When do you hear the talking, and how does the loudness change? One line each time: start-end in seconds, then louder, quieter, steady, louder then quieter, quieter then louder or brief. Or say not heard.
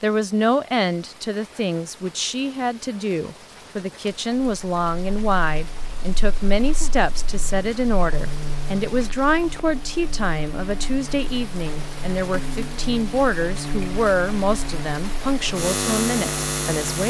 0.0-17.0 steady.